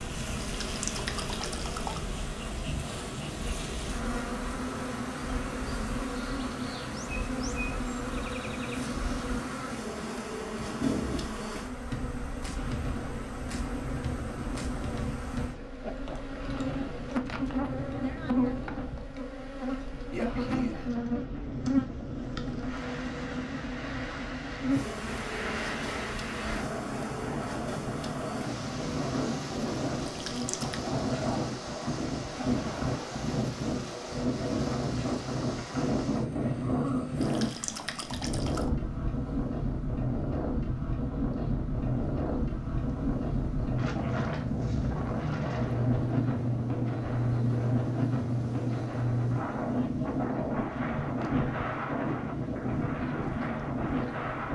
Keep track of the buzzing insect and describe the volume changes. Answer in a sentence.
The volume of the buzzing insect goes down.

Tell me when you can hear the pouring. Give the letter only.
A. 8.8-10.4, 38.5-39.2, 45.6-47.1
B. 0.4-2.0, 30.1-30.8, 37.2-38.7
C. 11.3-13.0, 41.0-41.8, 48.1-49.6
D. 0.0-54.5
B.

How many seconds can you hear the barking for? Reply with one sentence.
You can't hear the barking here.